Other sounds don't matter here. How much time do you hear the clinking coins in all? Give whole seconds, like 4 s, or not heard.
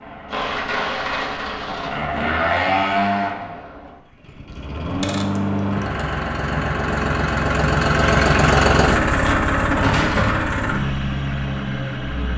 4 s.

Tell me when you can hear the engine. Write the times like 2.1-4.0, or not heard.
0.0-12.3.